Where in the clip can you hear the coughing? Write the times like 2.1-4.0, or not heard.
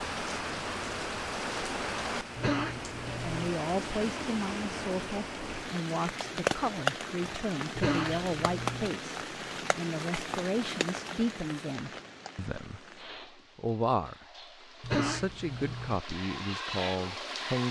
2.4-3.5, 7.8-8.9, 14.8-16.0.